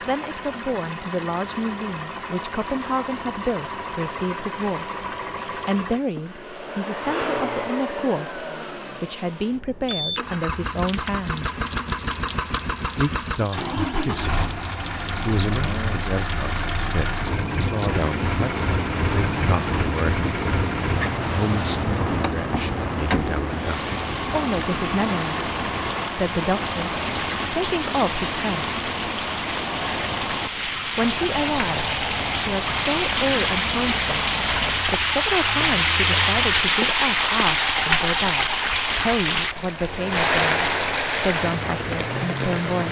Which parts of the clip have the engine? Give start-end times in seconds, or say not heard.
0.0-42.8.